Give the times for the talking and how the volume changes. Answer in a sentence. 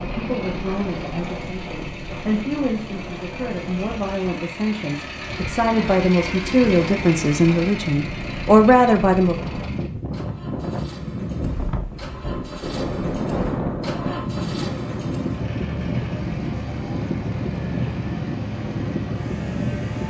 The talking can be heard from 0.0 to 9.3 s, getting louder.